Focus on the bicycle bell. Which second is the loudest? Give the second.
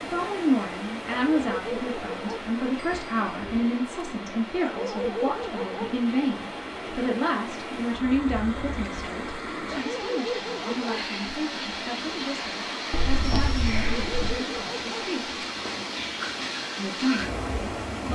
13 s.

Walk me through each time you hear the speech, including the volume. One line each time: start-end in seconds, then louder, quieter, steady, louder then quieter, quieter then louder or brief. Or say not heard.
0.0-15.3 quieter
16.8-18.0 brief.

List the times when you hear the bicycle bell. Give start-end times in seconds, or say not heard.
2.8-3.6, 12.9-14.3.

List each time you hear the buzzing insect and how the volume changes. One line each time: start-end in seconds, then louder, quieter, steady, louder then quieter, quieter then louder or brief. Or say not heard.
not heard.